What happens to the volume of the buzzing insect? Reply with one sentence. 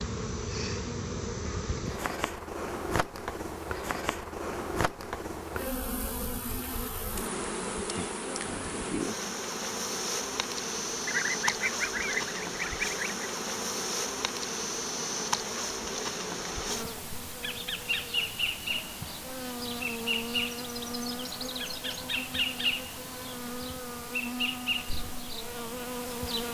The loudness of the buzzing insect stays about the same.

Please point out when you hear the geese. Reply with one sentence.
The geese can be heard from 11.1 to 13.1 s.